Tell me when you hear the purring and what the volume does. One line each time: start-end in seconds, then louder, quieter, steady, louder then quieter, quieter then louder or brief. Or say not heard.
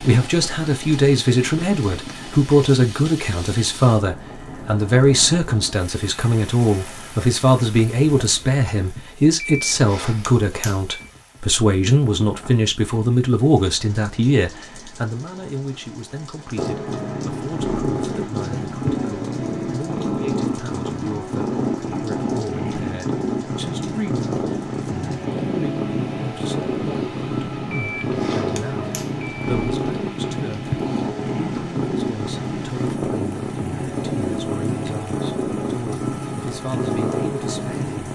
16.6-38.0 steady.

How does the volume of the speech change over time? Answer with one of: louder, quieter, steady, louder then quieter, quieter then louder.
quieter.